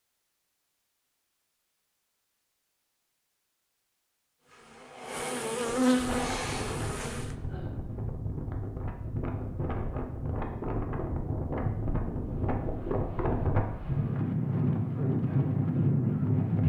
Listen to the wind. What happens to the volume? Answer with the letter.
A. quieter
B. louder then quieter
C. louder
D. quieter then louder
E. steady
C.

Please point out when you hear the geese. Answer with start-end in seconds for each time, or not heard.
not heard.